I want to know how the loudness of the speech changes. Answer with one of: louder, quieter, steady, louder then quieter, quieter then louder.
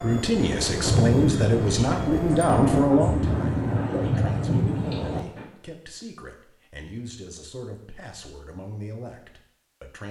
quieter.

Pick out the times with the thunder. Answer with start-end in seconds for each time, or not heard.
0.8-5.5.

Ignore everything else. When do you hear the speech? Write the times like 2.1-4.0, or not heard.
0.0-10.0.